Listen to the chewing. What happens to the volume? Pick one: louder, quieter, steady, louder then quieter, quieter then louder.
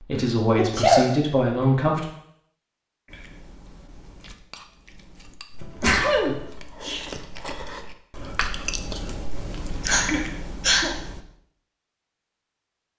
louder.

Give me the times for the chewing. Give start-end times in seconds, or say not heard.
3.0-11.2.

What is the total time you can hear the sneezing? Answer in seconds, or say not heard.
3 s.